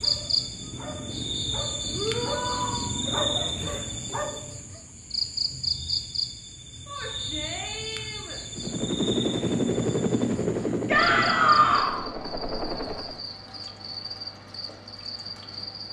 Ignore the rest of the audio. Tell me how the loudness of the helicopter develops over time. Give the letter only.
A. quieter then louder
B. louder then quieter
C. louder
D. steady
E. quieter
E.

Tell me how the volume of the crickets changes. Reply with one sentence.
The volume of the crickets goes down.